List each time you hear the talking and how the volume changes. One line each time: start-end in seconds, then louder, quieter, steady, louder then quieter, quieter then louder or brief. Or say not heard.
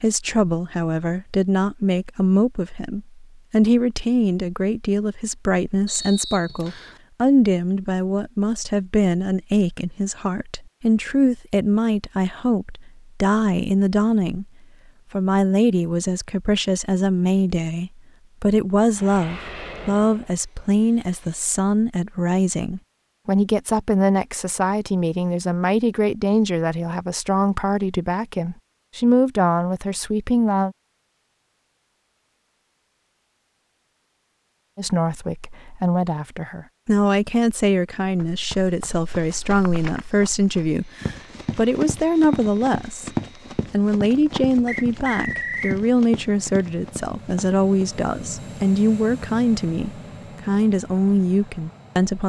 0.0-14.4 steady
15.1-30.8 steady
34.8-52.2 steady.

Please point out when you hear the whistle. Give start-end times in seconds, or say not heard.
5.8-7.0, 44.6-45.8.